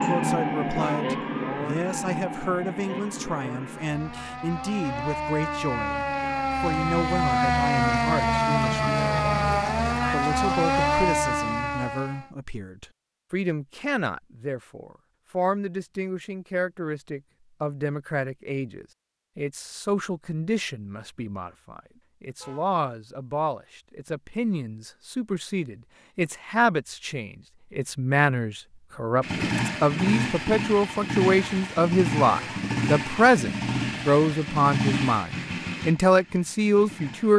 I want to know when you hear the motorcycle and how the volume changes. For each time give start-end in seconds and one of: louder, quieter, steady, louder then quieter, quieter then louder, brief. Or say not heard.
29.2-37.3 quieter.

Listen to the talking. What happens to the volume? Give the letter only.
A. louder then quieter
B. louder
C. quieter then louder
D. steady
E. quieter
B.